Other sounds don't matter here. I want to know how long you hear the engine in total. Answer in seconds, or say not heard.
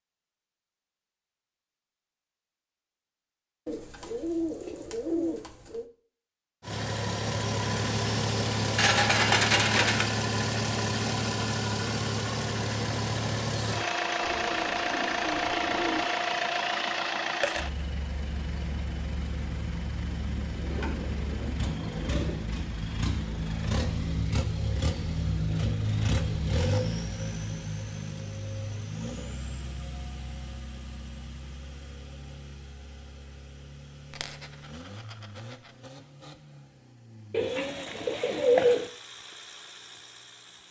34 s.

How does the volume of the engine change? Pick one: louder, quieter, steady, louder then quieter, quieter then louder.
quieter.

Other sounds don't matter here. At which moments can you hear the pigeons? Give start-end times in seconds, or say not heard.
3.6-5.8, 14.2-16.1, 20.6-22.4, 37.3-38.9.